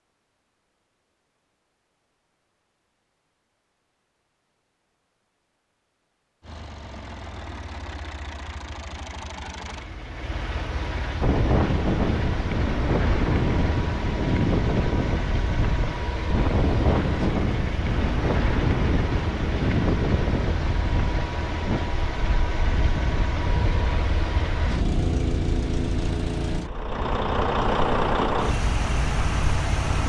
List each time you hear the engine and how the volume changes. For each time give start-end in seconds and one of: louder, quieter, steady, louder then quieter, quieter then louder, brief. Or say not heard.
6.4-30.0 louder.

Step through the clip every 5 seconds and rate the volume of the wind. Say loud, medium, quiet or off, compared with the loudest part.
off, off, loud, loud, medium, medium.